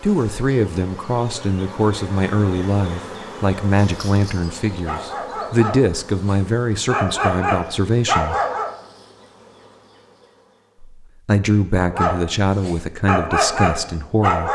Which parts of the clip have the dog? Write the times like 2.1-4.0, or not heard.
4.8-8.7, 11.8-14.4.